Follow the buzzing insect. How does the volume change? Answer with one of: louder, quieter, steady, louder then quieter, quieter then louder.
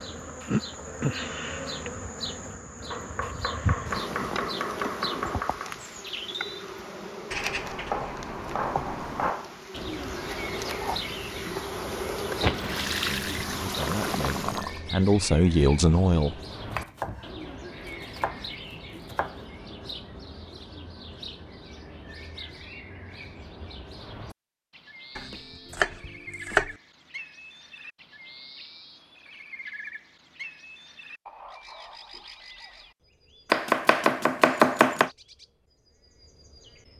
quieter then louder.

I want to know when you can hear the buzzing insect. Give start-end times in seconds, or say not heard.
0.0-14.6.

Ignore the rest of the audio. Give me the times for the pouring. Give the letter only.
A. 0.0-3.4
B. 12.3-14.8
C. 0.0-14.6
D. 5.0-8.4
B.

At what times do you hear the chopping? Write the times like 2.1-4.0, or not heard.
2.9-5.8, 7.9-9.7, 16.7-19.4, 25.1-26.7, 33.5-35.1.